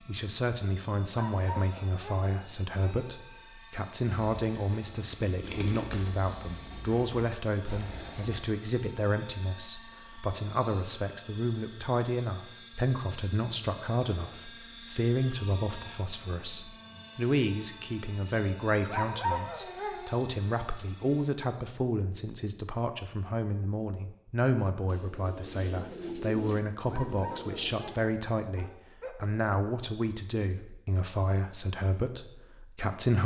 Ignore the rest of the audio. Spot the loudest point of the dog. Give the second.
19 s.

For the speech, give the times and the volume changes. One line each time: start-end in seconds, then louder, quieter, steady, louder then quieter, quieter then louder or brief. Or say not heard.
0.1-33.2 steady.